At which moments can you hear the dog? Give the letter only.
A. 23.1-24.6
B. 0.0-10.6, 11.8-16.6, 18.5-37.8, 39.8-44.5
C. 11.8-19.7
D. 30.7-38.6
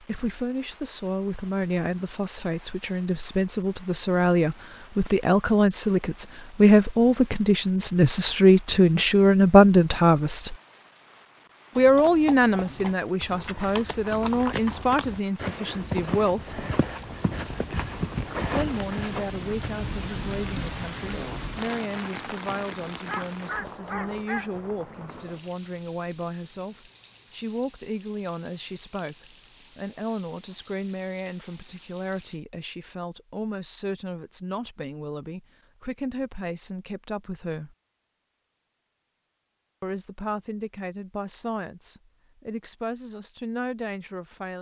A.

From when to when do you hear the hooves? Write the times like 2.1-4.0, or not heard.
11.8-19.7.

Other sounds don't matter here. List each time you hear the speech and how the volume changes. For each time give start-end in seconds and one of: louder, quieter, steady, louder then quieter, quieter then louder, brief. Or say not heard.
0.0-10.6 louder
11.8-16.6 quieter
18.5-37.8 steady
39.8-44.5 quieter then louder.